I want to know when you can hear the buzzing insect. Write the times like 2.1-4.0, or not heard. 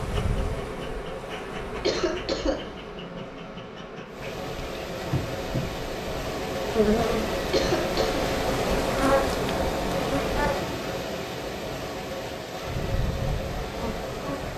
0.0-10.6, 12.6-14.5.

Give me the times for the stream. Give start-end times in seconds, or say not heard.
4.0-14.5.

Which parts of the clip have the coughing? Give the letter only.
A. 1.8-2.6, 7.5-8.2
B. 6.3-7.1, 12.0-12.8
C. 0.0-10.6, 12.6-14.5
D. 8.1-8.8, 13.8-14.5
A.